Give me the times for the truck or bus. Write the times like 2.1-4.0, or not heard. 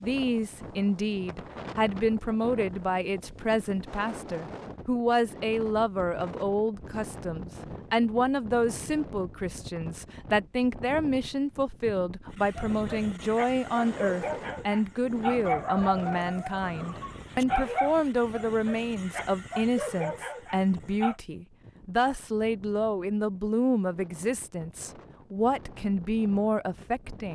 not heard.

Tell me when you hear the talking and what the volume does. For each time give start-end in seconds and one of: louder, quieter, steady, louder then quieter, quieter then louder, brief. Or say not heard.
0.0-27.3 steady.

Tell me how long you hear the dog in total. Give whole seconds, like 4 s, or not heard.
9 s.